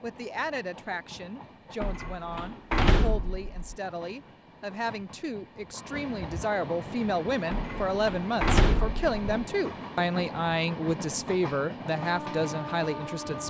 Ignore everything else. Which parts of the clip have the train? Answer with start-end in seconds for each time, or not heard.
0.0-13.4.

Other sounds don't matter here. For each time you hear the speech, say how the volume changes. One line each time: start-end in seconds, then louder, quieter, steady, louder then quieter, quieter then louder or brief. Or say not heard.
0.0-13.4 louder.